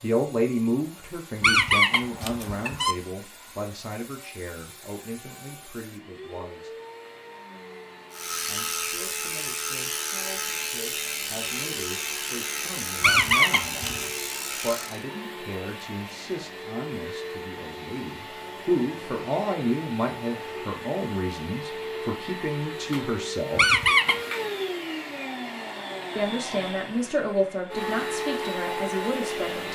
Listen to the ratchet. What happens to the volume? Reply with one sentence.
The loudness of the ratchet stays about the same.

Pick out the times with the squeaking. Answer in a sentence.
You can hear the squeaking from 1.4 to 3.0 s, from 13.0 to 14.1 s and from 23.6 to 24.1 s.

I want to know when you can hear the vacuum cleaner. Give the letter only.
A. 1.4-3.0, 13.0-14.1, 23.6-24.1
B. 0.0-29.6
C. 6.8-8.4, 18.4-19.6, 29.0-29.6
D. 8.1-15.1
B.